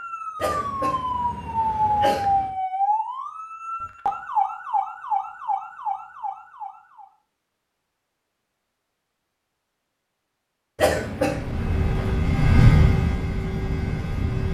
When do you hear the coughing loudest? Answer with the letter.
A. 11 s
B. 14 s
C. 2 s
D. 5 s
A.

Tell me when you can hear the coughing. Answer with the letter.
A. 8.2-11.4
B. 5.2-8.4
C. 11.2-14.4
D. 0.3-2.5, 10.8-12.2
D.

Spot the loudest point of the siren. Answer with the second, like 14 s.
2 s.